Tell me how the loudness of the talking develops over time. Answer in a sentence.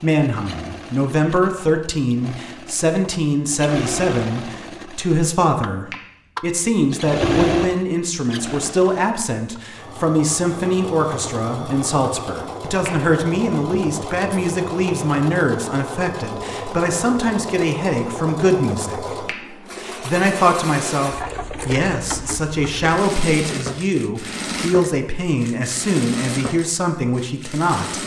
The loudness of the talking stays about the same.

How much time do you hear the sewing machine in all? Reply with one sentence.
You can hear the sewing machine for 28 seconds altogether.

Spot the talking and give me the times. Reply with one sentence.
The talking can be heard from 0.0 to 28.0 s.